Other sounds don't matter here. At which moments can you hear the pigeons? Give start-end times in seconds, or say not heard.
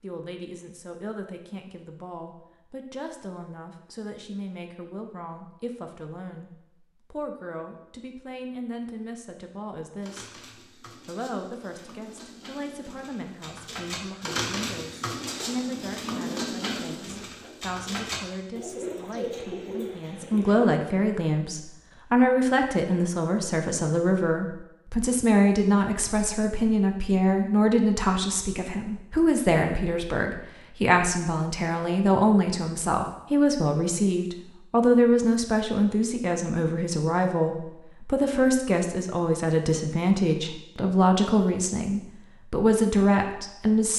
10.0-20.6.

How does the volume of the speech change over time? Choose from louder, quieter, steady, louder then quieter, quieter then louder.
louder.